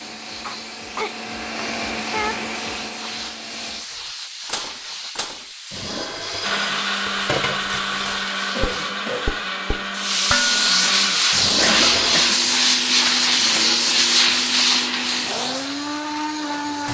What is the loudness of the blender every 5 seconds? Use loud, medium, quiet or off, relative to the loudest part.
medium, loud, loud, loud.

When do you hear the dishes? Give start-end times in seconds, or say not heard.
3.9-12.3.